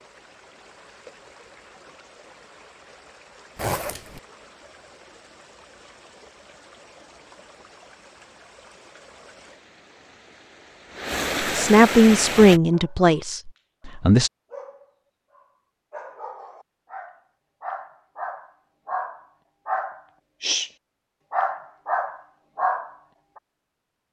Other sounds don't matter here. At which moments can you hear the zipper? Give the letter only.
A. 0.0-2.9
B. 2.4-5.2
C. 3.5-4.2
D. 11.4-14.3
C.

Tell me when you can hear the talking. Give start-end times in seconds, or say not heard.
11.4-14.3.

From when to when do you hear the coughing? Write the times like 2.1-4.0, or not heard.
not heard.